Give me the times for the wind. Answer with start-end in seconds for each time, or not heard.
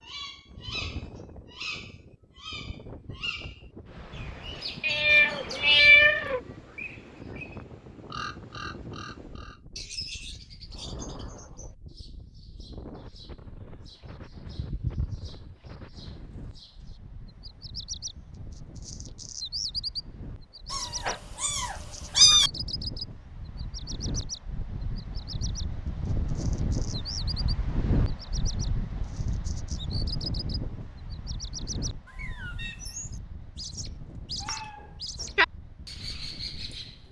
0.0-37.0.